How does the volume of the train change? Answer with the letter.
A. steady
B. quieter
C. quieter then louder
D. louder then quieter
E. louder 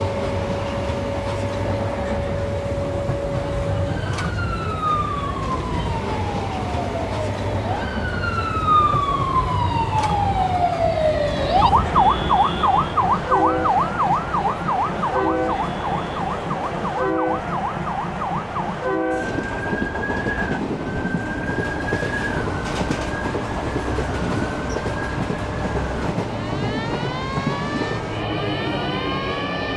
A.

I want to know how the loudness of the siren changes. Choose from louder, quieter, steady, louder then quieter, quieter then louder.
louder then quieter.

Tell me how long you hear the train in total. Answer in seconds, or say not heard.
30 s.